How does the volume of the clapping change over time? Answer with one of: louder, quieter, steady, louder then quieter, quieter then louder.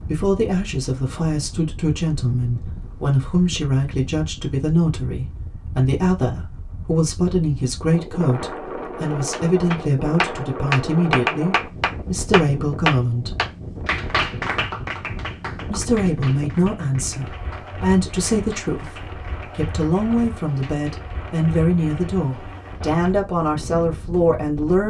quieter.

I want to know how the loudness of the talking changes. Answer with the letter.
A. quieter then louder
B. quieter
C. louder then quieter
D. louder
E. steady
E.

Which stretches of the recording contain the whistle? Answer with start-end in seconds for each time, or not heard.
not heard.